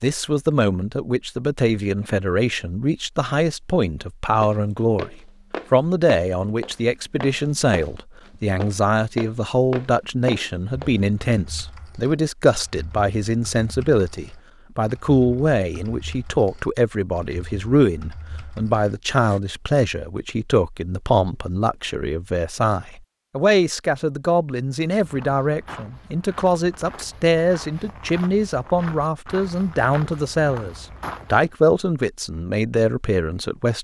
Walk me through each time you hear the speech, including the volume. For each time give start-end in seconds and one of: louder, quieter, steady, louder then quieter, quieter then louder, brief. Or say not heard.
0.0-33.7 steady.